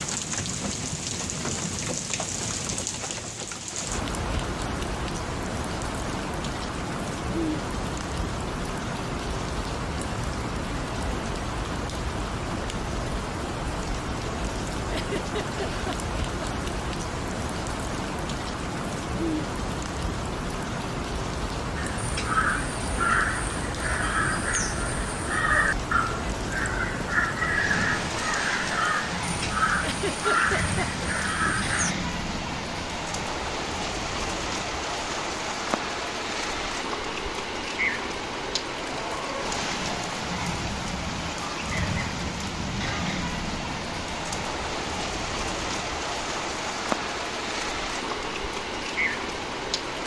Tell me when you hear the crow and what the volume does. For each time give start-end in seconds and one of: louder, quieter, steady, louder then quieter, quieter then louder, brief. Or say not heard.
21.8-31.9 steady.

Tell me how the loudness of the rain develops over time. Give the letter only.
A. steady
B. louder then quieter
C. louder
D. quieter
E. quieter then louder
A.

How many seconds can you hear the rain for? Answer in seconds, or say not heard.
50 s.